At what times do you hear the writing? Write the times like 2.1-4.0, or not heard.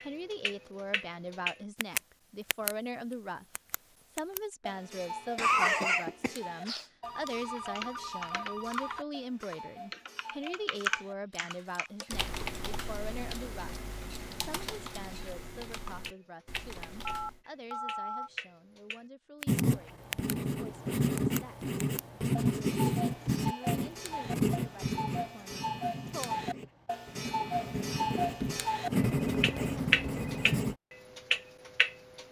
19.4-30.8.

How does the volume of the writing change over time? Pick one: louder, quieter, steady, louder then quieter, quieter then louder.
quieter then louder.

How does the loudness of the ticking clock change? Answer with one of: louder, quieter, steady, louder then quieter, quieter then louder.
quieter then louder.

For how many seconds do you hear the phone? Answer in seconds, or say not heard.
5 s.